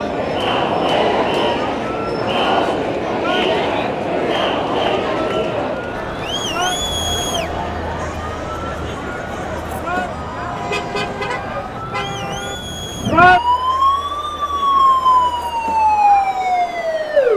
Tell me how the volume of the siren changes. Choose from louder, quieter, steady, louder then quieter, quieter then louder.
louder.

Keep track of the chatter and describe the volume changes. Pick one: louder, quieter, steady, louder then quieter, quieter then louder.
quieter.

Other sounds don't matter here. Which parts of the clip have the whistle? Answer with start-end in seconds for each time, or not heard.
not heard.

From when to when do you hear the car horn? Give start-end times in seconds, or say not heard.
10.6-12.6.